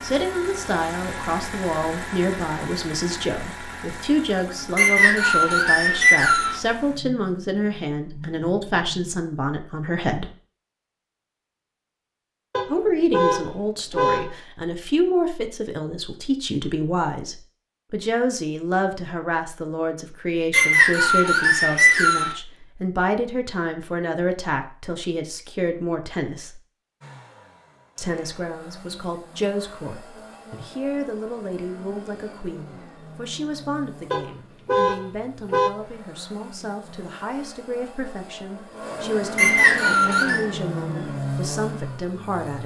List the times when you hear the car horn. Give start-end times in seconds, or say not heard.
12.5-14.3, 34.1-35.7.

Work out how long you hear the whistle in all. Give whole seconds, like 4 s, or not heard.
5 s.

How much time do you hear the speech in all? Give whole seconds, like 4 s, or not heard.
39 s.